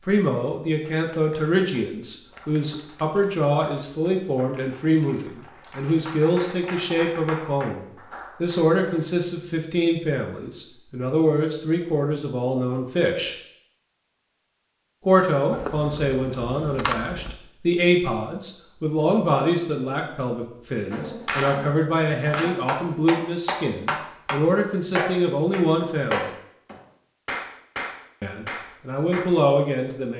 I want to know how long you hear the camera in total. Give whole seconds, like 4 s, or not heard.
3 s.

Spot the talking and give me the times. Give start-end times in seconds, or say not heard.
0.1-7.8, 8.4-13.3, 15.1-26.3, 28.2-30.1.